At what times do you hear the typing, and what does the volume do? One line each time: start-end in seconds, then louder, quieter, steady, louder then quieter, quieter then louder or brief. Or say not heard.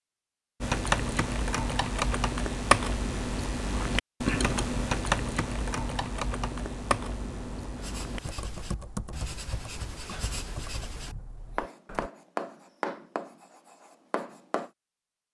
0.6-12.1 quieter.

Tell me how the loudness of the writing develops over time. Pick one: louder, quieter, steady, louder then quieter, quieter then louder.
louder then quieter.